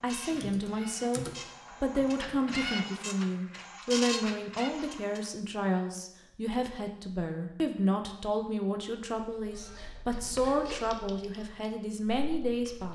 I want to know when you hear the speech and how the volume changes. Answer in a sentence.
The speech can be heard from 0.0 to 12.8 s, at a steady volume.